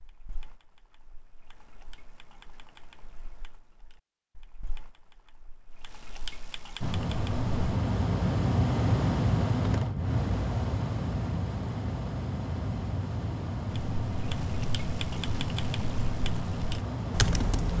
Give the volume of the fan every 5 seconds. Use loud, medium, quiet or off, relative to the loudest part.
off, loud, medium, medium.